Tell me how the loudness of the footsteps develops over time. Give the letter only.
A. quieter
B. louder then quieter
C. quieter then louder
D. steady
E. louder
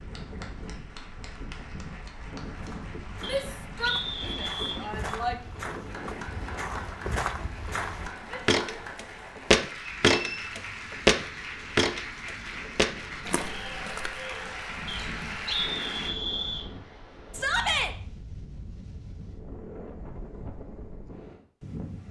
B.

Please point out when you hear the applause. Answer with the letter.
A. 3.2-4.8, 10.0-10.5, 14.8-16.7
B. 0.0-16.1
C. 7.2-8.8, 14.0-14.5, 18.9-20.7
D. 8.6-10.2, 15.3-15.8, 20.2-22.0
B.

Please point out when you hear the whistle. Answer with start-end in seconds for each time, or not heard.
3.2-4.8, 10.0-10.5, 14.8-16.7.